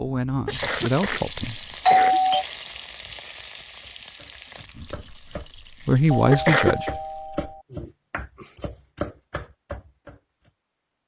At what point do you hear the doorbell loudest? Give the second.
2 s.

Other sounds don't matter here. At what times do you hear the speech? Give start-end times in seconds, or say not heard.
0.0-1.6, 4.8-5.2, 5.8-6.9.